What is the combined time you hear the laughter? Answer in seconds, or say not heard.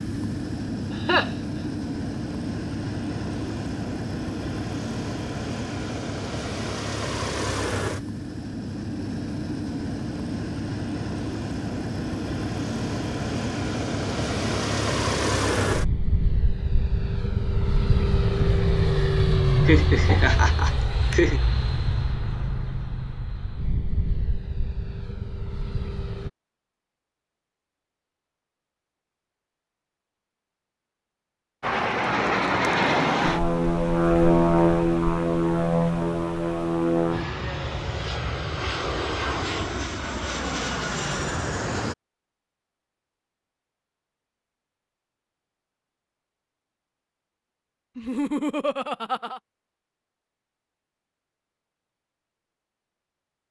4 s.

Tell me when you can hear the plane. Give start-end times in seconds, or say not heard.
0.0-26.3, 31.6-42.0.